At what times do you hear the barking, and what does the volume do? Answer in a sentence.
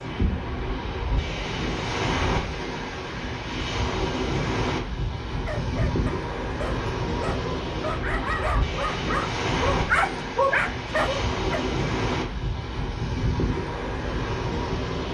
The barking can be heard from 5.5 to 11.7 s, getting louder.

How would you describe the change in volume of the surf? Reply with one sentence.
The loudness of the surf stays about the same.